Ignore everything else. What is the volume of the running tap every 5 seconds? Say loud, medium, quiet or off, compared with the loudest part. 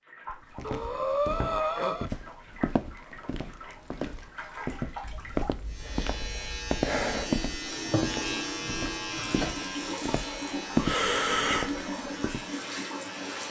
medium, loud, loud.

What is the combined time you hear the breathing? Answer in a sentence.
The breathing can be heard for 5 seconds in total.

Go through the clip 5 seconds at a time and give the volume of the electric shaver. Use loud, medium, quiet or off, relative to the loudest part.
off, loud, medium.